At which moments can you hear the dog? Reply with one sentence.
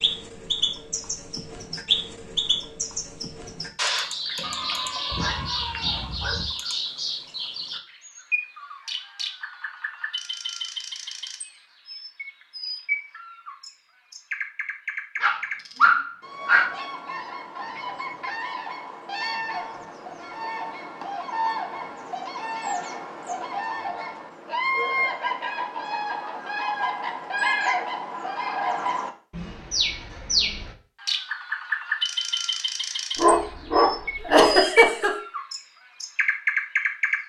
You can hear the dog from 4.4 to 6.5 s, from 15.2 to 16.6 s and from 33.1 to 34.5 s.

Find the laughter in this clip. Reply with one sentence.
You can hear the laughter from 34.2 to 35.1 s.